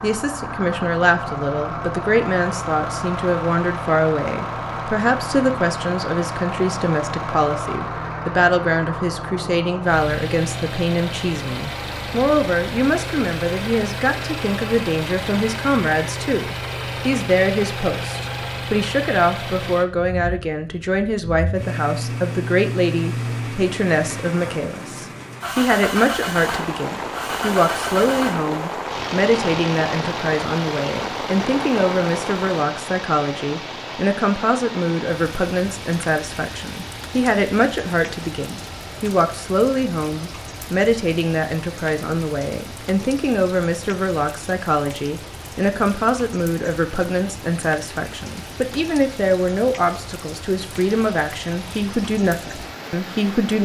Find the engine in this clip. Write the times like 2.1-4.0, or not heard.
0.0-53.6.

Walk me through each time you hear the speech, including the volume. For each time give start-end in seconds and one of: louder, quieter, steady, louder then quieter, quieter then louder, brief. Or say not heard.
0.0-53.6 steady.